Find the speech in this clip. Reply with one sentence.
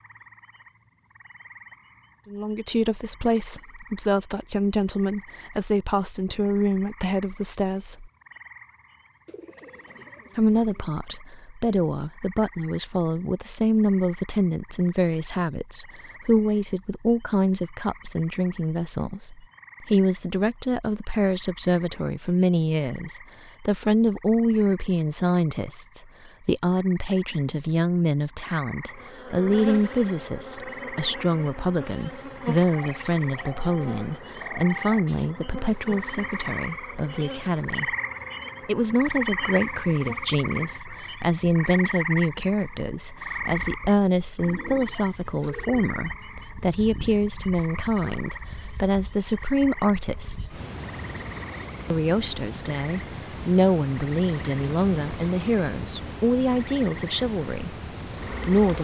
The speech can be heard from 2.2 to 8.1 s, from 10.3 to 38.0 s, from 38.6 to 50.5 s and from 51.9 to 58.8 s.